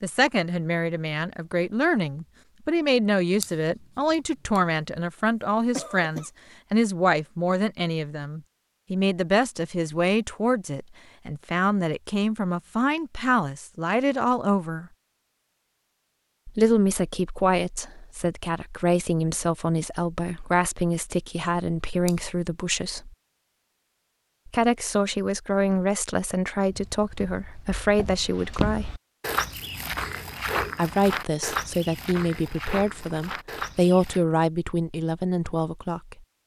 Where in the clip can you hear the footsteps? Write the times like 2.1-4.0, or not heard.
26.7-34.2.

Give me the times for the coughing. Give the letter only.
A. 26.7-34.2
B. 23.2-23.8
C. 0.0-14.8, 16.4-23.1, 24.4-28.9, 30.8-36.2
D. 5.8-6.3
D.